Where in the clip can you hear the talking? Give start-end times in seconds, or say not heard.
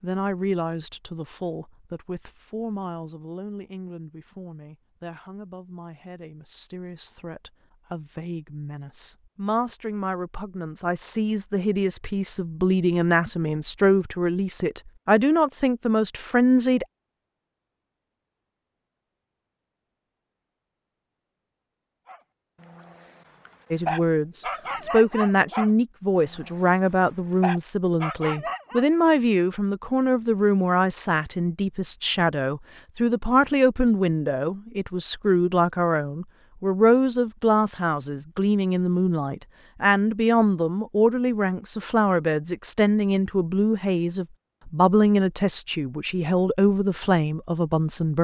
0.0-16.9, 23.7-48.1.